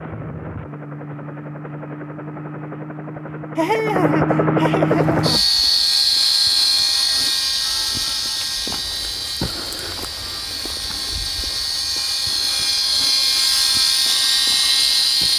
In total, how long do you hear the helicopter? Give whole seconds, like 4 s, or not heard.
15 s.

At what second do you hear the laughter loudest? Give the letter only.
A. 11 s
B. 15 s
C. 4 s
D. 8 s
C.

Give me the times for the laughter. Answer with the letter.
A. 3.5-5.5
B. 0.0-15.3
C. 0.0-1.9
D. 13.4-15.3
A.